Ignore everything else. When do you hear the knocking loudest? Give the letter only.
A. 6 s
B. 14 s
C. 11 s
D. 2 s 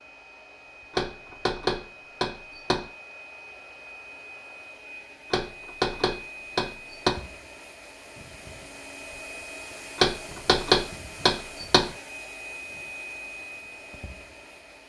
C.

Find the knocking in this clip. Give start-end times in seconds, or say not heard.
0.9-2.9, 5.3-7.2, 9.9-11.9.